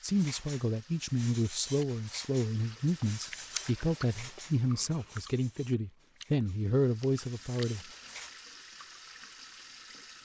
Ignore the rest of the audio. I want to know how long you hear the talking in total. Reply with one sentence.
You can hear the talking for 8 seconds altogether.